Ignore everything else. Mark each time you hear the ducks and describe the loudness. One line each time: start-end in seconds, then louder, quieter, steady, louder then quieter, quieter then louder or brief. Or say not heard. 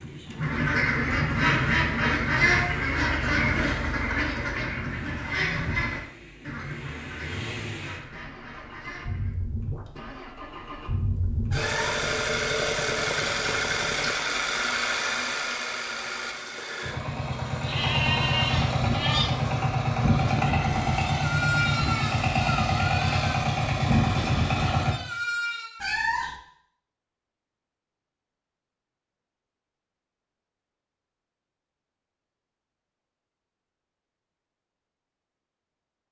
0.3-9.3 quieter.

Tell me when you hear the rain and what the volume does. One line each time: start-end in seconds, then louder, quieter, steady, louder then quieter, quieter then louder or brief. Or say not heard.
not heard.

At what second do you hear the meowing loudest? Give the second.
26 s.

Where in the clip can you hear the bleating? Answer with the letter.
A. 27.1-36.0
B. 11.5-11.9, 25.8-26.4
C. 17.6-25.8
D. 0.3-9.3
C.